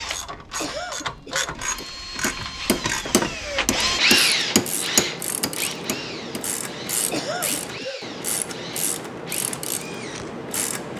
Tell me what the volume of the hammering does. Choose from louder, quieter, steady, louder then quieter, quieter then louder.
louder then quieter.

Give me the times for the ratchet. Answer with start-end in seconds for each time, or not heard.
0.0-10.9.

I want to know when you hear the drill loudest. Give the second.
4 s.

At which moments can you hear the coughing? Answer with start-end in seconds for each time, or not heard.
0.6-2.0, 7.1-8.2.